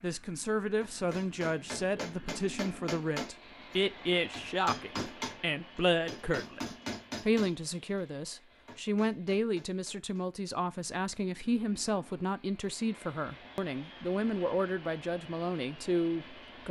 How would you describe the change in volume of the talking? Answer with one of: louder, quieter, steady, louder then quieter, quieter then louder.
steady.